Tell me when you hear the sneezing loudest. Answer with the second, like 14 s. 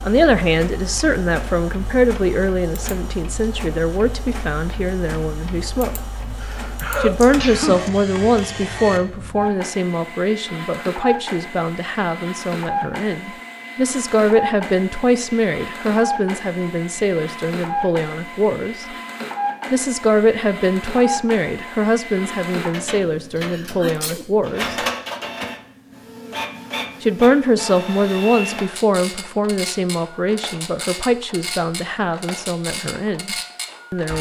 7 s.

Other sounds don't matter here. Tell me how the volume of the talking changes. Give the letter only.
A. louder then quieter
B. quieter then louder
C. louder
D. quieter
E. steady
E.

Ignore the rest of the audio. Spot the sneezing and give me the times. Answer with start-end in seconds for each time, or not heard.
6.4-7.8, 23.4-24.3.